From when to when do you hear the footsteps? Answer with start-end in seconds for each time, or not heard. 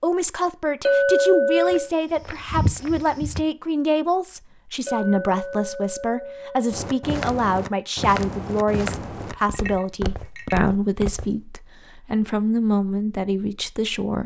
1.6-3.5, 6.7-11.3.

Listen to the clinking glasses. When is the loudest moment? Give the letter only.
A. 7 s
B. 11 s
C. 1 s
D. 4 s
C.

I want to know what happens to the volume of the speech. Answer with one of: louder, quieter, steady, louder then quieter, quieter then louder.
steady.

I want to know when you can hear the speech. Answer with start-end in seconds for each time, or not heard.
0.0-14.2.